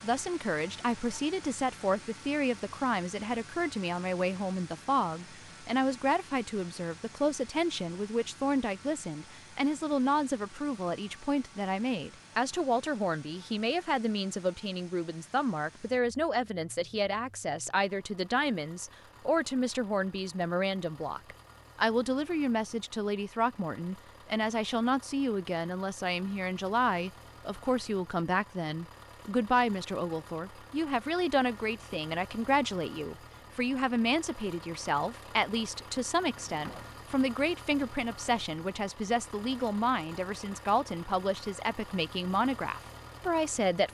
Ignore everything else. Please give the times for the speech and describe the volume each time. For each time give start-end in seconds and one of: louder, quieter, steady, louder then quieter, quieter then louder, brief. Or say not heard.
0.0-43.8 steady.